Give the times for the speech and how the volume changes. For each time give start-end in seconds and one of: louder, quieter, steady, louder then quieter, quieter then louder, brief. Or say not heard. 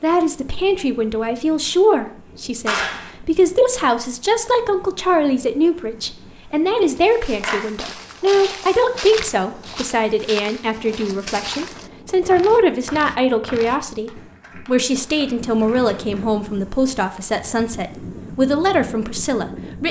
0.0-19.8 steady.